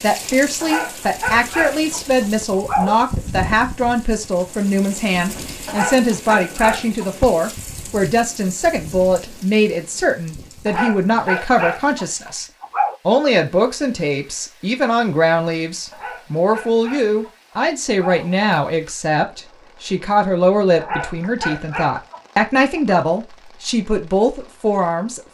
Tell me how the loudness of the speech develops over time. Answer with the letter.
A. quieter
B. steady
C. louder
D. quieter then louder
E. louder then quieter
B.